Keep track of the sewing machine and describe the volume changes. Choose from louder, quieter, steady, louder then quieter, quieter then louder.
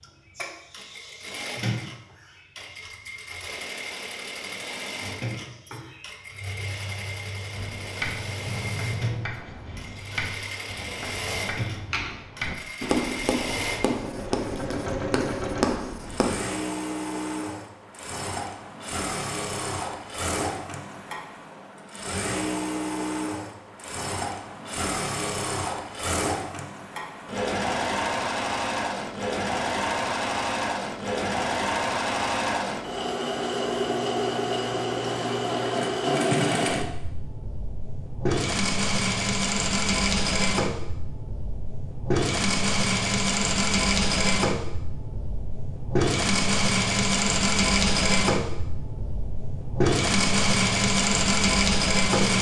louder.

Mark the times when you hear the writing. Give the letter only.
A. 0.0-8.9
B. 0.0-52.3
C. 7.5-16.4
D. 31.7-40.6
C.